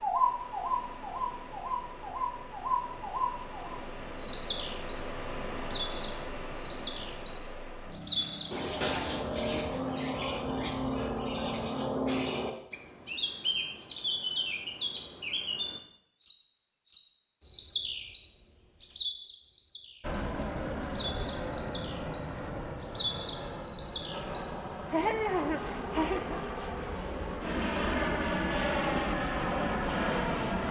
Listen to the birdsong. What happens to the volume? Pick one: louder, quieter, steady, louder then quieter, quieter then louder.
quieter.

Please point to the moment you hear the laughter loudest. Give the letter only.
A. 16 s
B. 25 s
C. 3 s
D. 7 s
B.